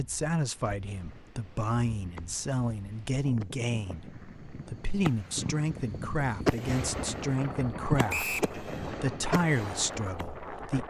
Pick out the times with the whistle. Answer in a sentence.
You can hear the whistle from 8.1 to 8.5 s.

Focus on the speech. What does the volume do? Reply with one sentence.
The loudness of the speech stays about the same.